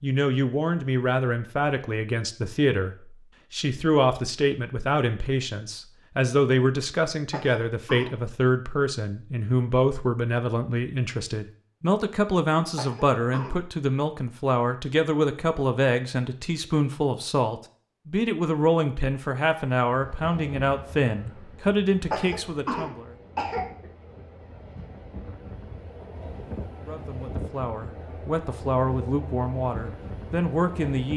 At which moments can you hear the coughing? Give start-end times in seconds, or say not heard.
7.3-8.2, 12.8-13.6, 22.1-23.9.